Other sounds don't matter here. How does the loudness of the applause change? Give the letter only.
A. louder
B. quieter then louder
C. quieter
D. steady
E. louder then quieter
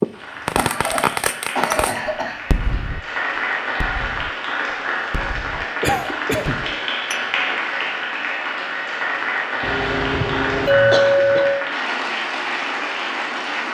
A.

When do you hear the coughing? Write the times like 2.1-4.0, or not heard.
0.6-2.4, 5.8-6.5, 9.6-11.5.